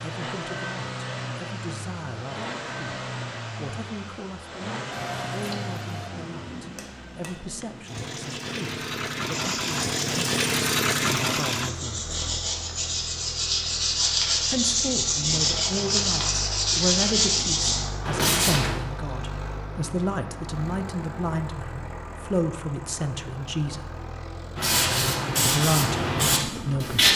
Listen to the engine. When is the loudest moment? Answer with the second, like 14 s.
11 s.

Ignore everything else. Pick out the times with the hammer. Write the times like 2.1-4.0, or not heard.
4.9-7.5.